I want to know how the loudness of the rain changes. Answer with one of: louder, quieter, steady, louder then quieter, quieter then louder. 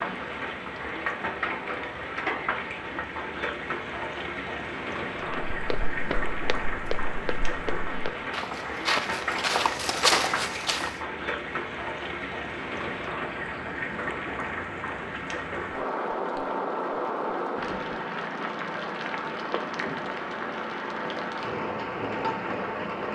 steady.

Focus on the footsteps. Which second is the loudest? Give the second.
10 s.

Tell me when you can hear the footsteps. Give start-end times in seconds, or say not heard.
5.5-10.9.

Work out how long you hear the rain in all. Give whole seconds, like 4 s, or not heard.
23 s.